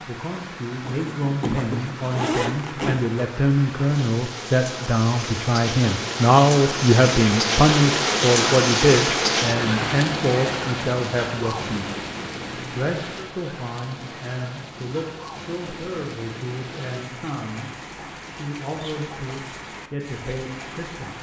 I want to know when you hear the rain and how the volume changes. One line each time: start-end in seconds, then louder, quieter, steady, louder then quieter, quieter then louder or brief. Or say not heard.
0.0-21.1 louder then quieter.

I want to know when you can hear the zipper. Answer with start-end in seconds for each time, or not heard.
0.8-3.2.